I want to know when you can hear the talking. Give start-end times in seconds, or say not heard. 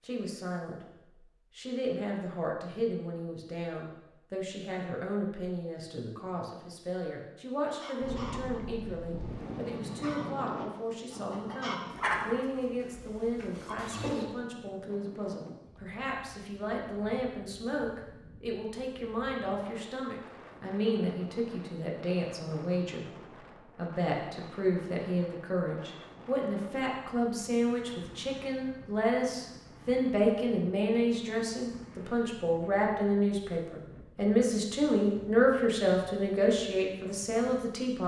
0.0-0.8, 1.6-23.1, 23.8-38.0.